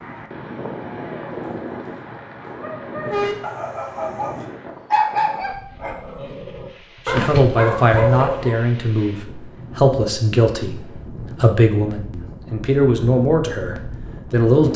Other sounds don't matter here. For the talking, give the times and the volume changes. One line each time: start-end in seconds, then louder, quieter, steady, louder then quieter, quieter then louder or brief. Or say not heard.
7.0-14.7 steady.